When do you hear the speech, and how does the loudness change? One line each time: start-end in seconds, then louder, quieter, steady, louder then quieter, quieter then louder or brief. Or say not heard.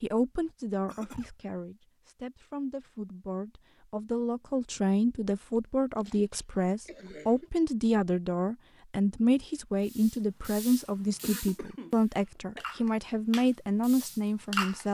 0.0-14.8 louder.